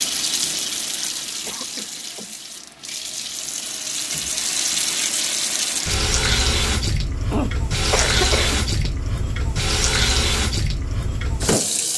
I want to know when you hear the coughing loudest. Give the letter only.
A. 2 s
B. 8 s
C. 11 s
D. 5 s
B.